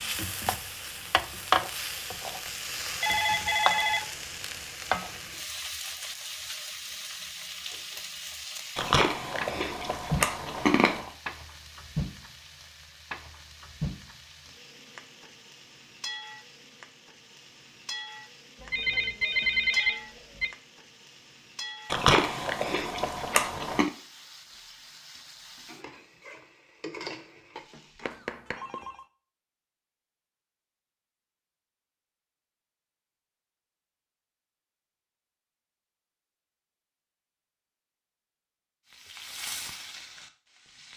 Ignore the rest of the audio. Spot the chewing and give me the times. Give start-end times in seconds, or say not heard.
8.8-11.1, 21.9-23.9.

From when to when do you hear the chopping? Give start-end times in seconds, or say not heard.
not heard.